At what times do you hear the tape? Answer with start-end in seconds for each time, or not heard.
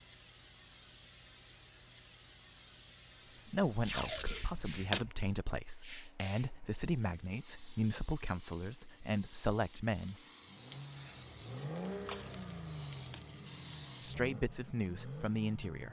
3.8-5.1, 12.0-13.2.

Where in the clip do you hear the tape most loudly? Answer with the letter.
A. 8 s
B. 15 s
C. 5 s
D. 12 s
C.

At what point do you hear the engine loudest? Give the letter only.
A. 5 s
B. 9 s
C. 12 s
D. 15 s
C.